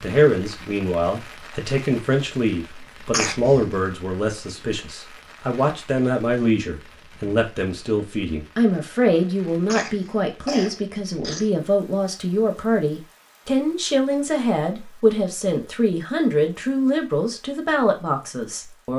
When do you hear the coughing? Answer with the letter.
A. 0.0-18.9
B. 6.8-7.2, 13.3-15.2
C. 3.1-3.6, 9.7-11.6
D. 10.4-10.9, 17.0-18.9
C.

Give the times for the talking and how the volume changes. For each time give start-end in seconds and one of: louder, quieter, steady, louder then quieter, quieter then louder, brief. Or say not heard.
0.0-18.9 steady.